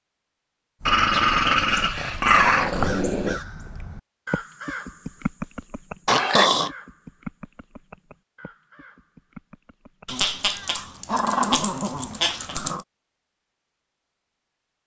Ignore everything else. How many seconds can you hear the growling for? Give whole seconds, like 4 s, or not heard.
6 s.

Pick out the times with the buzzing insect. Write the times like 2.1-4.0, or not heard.
not heard.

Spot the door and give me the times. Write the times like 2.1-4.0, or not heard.
not heard.